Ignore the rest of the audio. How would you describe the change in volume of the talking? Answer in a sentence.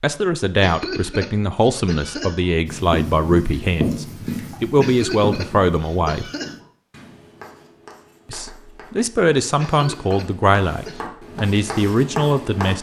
The volume of the talking stays about the same.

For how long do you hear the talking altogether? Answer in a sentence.
You can hear the talking for 11 seconds altogether.